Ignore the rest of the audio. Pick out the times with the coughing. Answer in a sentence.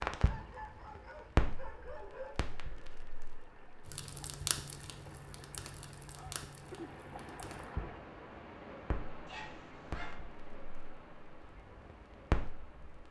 The coughing can't be heard in this clip.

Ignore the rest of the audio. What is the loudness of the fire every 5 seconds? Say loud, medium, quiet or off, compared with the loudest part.
loud, medium, loud.